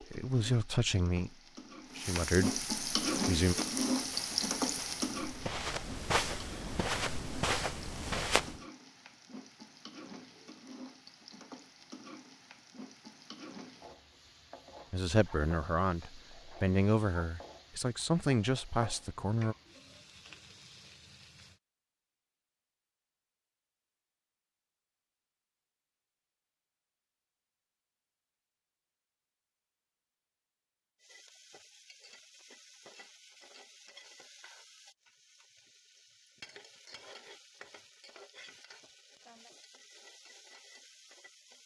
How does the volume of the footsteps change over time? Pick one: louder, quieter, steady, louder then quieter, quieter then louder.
louder.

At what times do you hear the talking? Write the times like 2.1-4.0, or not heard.
0.1-3.5, 14.9-19.6.